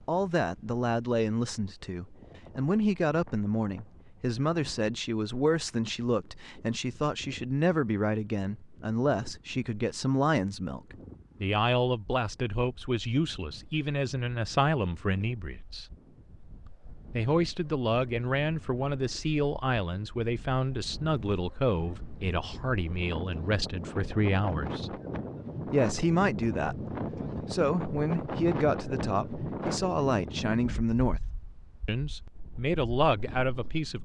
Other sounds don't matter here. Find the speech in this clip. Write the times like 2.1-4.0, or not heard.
0.1-15.8, 17.1-24.9, 25.7-31.2, 31.9-34.0.